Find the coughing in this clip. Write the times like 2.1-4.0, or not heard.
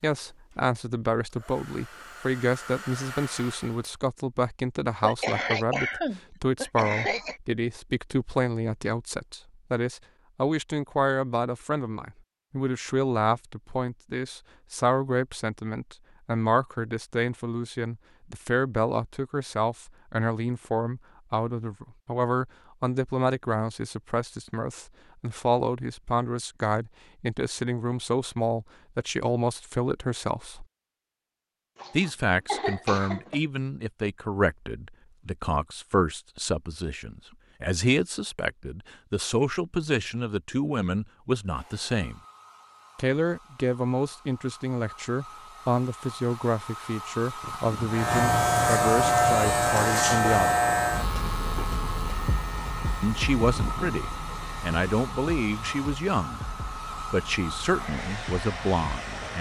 5.0-7.4, 31.8-33.4.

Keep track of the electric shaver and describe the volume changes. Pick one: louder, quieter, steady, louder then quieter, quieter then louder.
quieter.